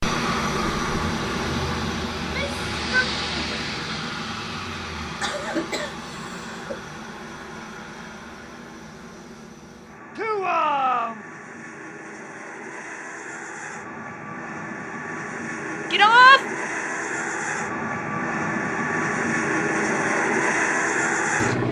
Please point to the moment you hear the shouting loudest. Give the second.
16 s.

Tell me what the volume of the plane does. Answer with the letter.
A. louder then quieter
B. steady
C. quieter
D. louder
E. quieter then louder
E.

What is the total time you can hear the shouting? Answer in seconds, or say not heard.
3 s.